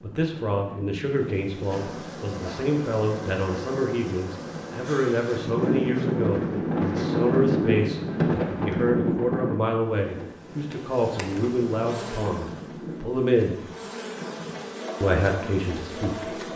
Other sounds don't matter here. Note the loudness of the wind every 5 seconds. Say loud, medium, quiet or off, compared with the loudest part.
quiet, loud, quiet, off.